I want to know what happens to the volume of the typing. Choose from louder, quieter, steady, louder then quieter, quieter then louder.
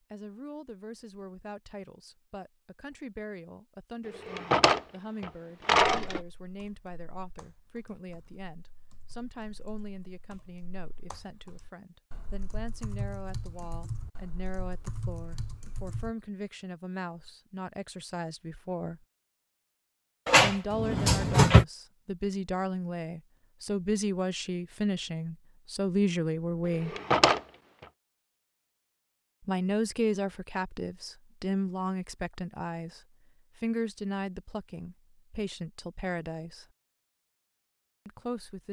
louder.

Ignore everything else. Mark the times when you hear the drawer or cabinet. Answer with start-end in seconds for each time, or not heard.
4.2-6.2, 20.2-21.6, 26.9-27.4.